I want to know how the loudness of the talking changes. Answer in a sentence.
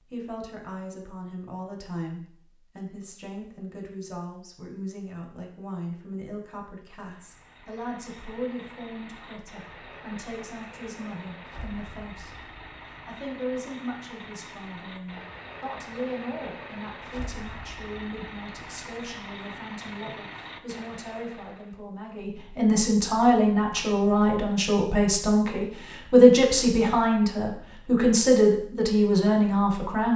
The volume of the talking goes up.